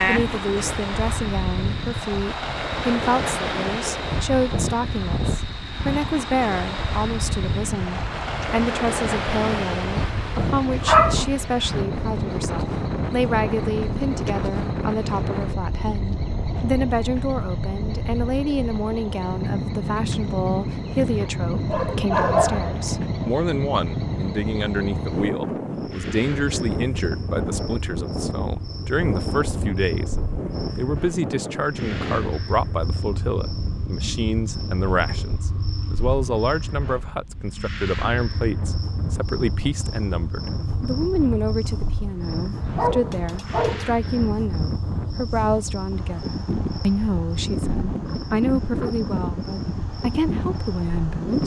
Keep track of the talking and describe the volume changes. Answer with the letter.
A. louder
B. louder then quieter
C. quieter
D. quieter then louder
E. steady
E.